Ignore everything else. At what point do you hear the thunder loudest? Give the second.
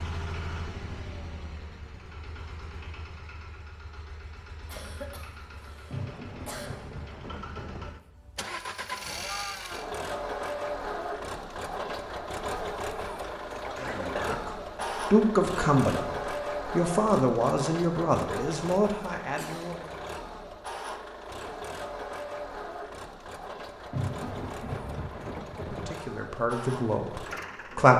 24 s.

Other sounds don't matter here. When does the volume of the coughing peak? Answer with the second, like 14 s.
14 s.